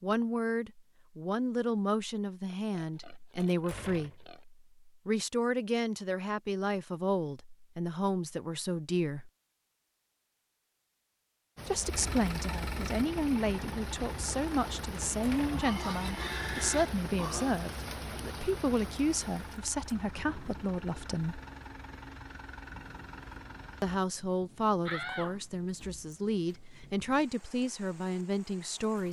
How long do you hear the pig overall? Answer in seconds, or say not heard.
4 s.